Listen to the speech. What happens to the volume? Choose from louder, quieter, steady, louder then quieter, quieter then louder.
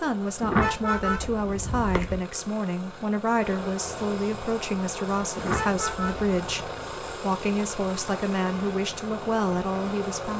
steady.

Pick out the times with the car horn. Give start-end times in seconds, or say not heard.
0.4-2.2, 5.3-6.3.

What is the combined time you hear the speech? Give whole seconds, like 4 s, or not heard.
10 s.